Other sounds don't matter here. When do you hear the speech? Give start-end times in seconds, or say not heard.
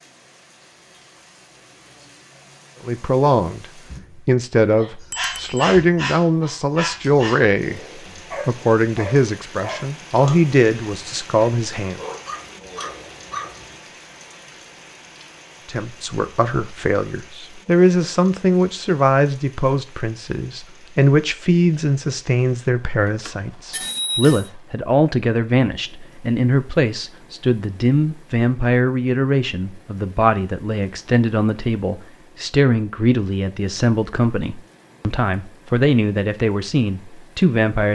2.9-12.0, 15.7-37.9.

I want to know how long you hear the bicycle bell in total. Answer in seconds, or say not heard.
2 s.